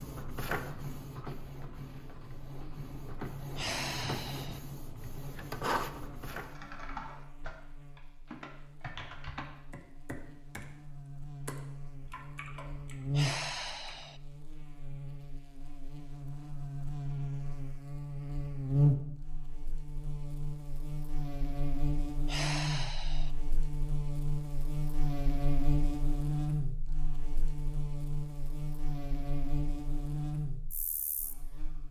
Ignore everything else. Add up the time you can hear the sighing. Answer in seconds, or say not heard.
3 s.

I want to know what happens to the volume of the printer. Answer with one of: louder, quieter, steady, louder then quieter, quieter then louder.
quieter then louder.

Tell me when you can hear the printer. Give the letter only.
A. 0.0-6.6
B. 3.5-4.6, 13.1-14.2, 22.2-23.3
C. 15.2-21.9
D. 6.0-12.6
A.